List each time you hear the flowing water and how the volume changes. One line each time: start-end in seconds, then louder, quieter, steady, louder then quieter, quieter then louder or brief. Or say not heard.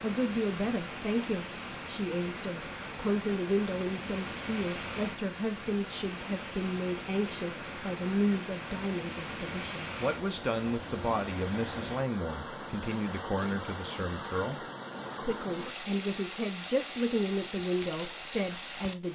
0.0-19.1 steady.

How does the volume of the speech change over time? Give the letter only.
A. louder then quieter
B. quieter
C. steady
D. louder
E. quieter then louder
C.